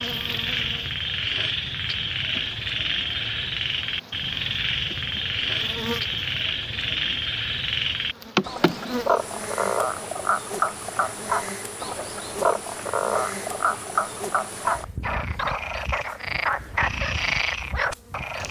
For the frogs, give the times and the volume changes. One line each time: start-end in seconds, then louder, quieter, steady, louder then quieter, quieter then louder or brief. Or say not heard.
0.0-18.4 steady.